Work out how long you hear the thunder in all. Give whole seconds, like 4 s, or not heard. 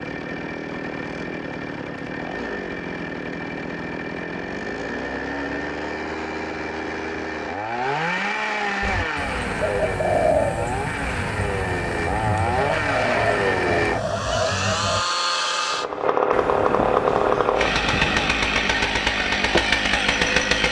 2 s.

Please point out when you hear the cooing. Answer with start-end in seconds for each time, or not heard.
8.8-15.0.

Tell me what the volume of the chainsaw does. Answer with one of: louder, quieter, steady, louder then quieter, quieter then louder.
louder.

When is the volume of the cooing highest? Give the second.
10 s.